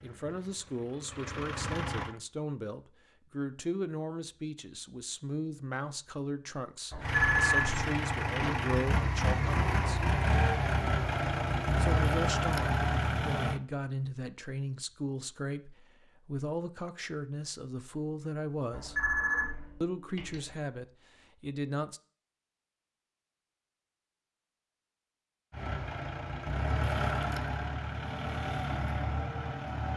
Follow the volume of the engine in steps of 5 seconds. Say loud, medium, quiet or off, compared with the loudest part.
medium, loud, loud, off, off, medium.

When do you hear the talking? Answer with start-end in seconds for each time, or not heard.
0.0-10.1, 11.8-19.1, 19.8-22.0.